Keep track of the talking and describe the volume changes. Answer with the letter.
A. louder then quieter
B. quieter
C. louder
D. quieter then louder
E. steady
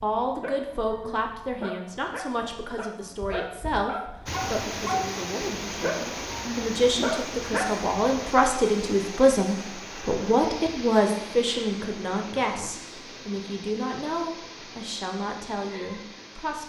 A.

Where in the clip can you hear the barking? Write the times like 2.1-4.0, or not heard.
0.0-8.0.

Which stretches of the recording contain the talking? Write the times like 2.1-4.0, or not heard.
0.0-16.6.